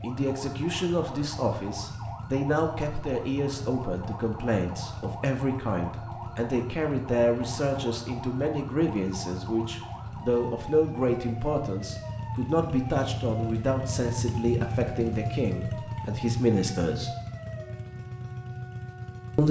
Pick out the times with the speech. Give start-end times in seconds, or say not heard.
0.0-17.1.